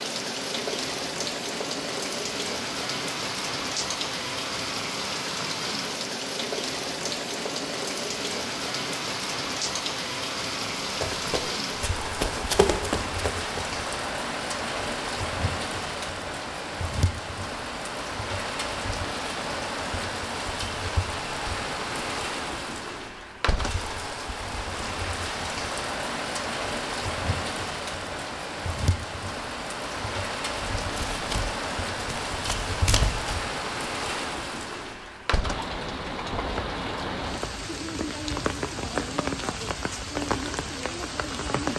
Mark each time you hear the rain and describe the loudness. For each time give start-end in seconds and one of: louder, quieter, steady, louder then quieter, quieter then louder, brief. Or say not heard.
0.0-41.7 steady.